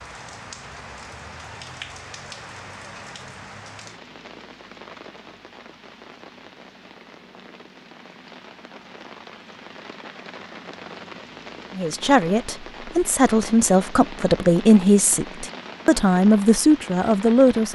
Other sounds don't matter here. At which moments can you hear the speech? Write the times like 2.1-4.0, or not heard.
11.8-17.7.